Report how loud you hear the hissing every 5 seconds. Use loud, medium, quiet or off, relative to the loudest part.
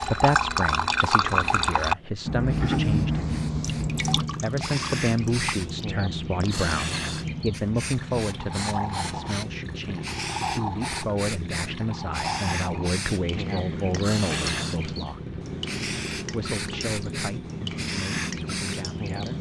medium, loud, loud, loud.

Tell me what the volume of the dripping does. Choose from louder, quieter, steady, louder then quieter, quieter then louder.
quieter.